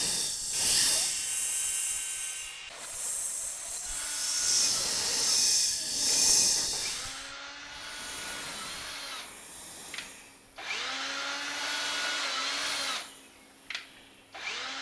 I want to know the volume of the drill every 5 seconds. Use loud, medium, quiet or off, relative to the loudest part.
medium, medium, loud.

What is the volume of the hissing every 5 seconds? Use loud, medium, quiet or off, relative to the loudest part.
loud, loud, quiet.